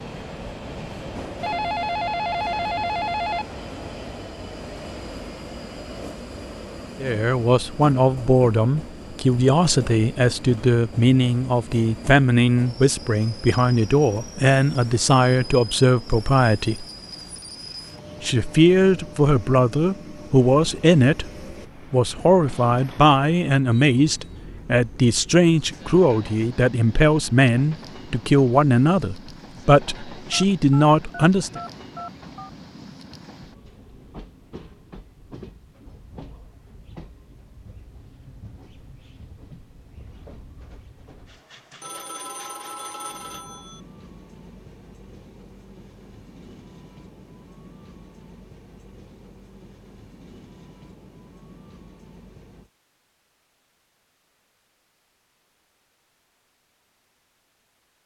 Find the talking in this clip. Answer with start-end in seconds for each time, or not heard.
7.0-16.9, 18.2-21.3, 21.9-31.6.